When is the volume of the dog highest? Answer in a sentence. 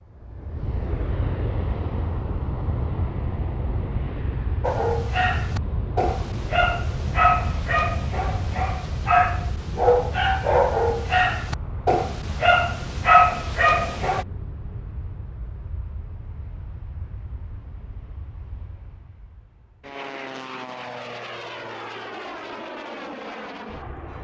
The volume of the dog peaks at 13 seconds.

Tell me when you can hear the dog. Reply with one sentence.
The dog can be heard from 4.6 to 14.2 s.